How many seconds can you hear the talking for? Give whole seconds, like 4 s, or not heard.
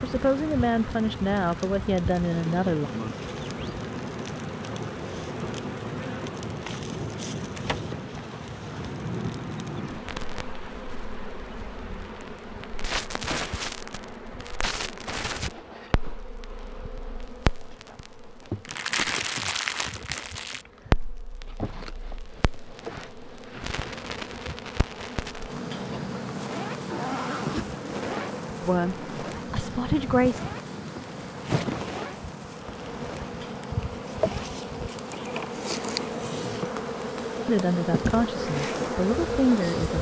7 s.